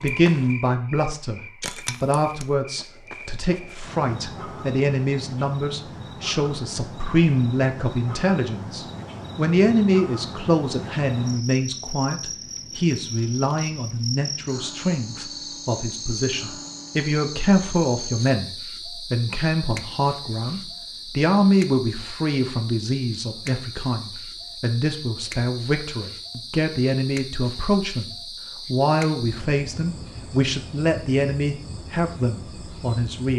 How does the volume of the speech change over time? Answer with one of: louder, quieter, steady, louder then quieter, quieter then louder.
steady.